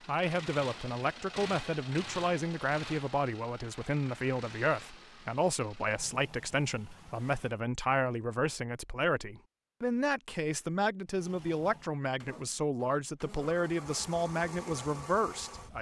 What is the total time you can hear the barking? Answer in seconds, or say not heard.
not heard.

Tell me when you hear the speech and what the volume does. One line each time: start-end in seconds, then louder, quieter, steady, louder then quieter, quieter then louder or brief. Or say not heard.
0.1-15.7 steady.